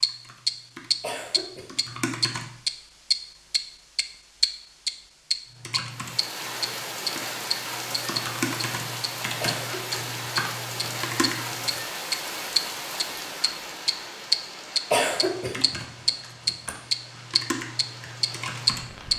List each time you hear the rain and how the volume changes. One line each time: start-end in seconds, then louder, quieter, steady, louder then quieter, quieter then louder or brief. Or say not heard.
5.8-19.1 quieter.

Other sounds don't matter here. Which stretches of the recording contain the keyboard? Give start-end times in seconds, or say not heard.
0.0-2.5, 5.6-11.8, 15.2-18.9.